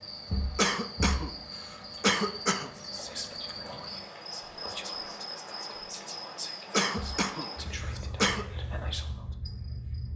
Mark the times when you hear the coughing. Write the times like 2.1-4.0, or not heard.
0.6-2.7, 6.7-8.4.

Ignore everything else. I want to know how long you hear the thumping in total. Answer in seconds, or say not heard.
2 s.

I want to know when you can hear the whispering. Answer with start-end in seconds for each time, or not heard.
2.6-9.3.